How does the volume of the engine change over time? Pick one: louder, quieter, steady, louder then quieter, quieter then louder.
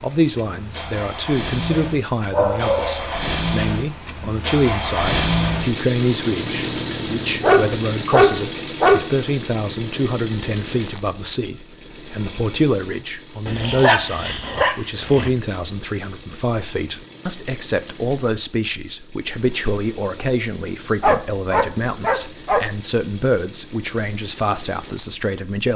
quieter.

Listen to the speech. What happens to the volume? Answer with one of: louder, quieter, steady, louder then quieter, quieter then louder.
steady.